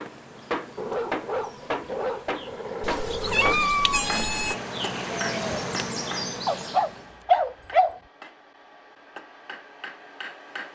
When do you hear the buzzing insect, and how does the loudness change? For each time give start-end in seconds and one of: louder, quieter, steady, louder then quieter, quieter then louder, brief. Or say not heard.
0.0-7.2 louder.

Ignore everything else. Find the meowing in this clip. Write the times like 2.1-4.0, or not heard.
2.8-4.5.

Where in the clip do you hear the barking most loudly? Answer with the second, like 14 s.
7 s.